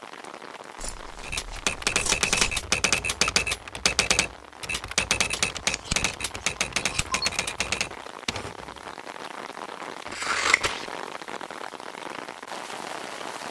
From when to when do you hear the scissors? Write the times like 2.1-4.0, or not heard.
0.8-2.6, 5.3-7.3, 10.1-10.9.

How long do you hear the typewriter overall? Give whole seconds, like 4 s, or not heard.
8 s.